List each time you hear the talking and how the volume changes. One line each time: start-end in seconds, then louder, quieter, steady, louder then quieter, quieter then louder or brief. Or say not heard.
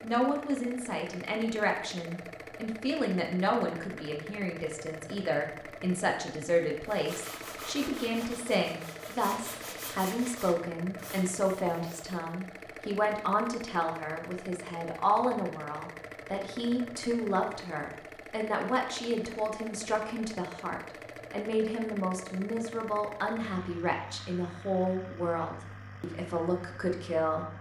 0.0-27.4 steady.